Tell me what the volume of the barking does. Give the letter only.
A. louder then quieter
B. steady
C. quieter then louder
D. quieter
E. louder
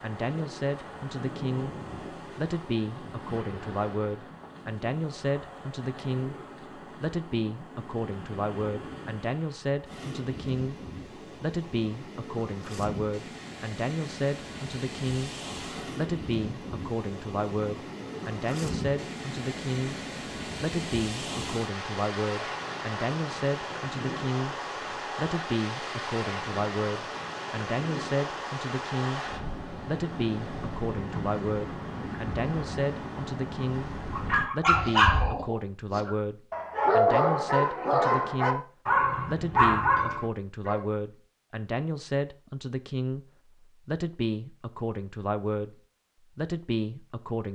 C.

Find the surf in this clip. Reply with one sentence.
You can hear the surf from 0.0 to 34.5 s.